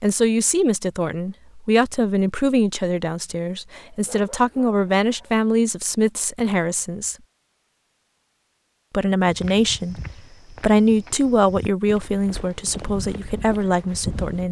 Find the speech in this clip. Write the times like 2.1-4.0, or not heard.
0.0-7.2, 8.9-14.4.